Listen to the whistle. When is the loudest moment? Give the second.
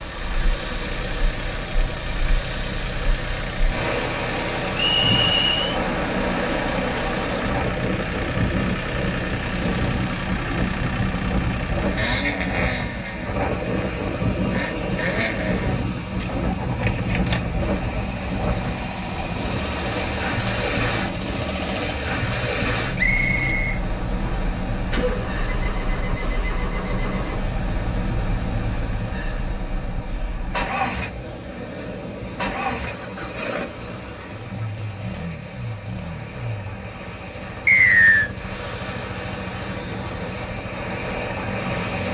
38 s.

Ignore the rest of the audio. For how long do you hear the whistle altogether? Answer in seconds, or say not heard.
3 s.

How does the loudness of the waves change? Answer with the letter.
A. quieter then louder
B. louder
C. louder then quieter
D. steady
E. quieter
E.